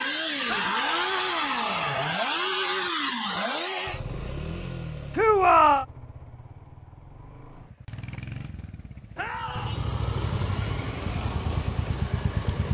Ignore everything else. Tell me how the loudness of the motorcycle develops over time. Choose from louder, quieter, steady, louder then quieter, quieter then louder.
quieter then louder.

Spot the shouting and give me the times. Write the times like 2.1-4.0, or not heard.
0.5-1.9, 5.2-5.8, 9.2-9.8.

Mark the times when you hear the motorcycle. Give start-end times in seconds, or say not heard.
0.0-12.6.